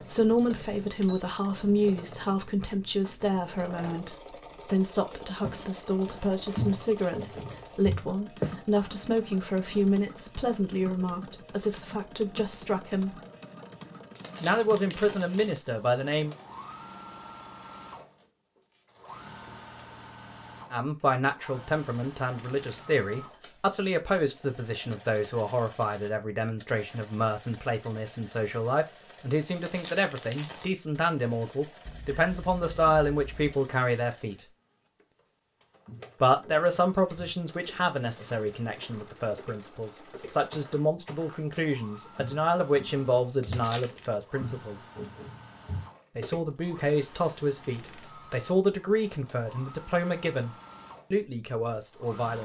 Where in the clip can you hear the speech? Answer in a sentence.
You can hear the speech from 0.0 to 13.2 s, from 14.4 to 16.4 s, from 20.7 to 34.5 s, from 36.2 to 44.8 s and from 46.1 to 52.4 s.